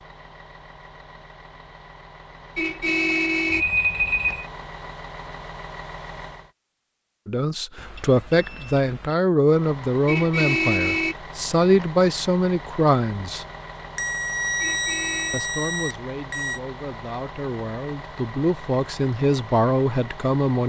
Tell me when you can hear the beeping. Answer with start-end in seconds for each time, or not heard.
3.5-4.5, 7.8-9.2, 13.9-16.6.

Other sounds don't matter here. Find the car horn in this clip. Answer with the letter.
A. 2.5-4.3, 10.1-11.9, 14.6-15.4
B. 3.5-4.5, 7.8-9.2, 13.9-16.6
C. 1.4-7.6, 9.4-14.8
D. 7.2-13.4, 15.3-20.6
A.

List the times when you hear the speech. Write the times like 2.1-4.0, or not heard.
7.2-13.4, 15.3-20.6.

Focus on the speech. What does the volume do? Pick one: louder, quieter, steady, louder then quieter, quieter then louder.
quieter then louder.